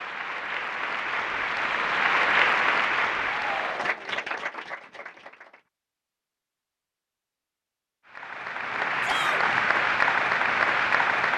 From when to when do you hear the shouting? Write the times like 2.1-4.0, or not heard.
3.4-4.2, 9.0-9.4.